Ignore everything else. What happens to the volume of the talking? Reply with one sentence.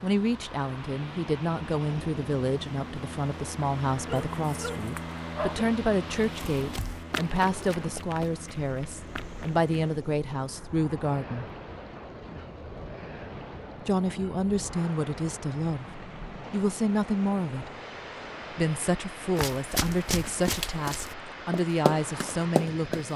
The loudness of the talking stays about the same.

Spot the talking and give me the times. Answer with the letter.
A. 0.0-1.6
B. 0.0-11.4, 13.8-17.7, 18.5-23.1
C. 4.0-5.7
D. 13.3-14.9
B.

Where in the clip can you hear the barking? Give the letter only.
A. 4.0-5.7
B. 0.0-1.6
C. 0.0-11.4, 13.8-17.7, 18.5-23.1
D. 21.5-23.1
A.